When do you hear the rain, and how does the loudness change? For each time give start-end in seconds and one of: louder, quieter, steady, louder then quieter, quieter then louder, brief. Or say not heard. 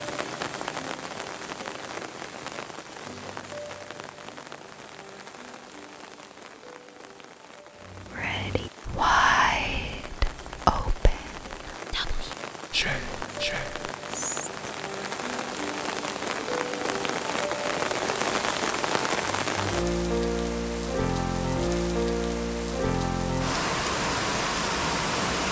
0.0-25.4 quieter then louder.